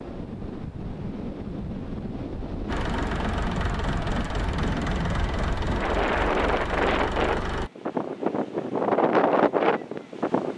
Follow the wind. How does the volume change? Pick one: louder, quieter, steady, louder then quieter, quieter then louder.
louder.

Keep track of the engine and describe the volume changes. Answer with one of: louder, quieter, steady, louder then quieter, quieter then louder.
steady.